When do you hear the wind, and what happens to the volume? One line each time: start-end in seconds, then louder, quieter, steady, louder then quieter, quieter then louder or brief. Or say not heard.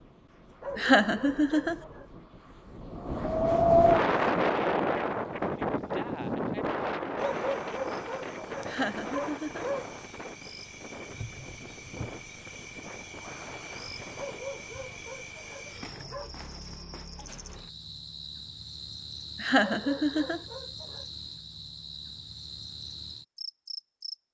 0.0-14.4 louder then quieter.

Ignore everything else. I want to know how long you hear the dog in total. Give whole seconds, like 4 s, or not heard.
8 s.